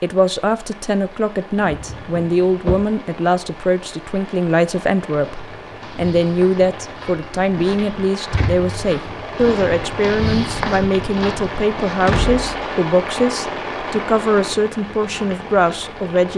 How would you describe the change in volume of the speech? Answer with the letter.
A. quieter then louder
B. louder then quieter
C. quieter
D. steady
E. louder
D.